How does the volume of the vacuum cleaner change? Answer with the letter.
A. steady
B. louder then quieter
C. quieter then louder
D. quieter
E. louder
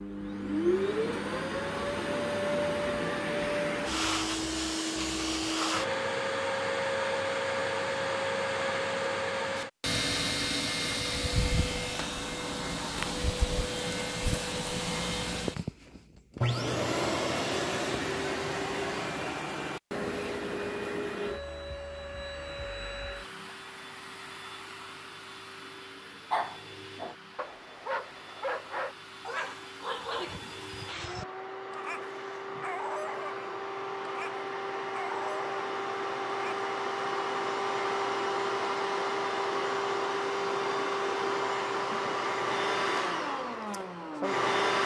C.